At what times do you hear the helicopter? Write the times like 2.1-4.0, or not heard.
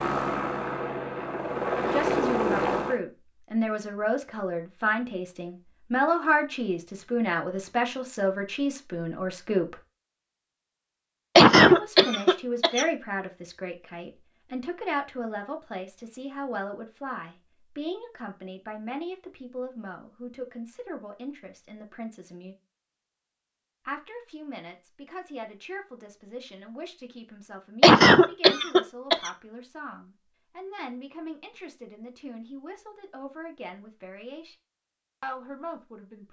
0.0-3.0.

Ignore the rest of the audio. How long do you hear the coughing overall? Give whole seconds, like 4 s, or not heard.
3 s.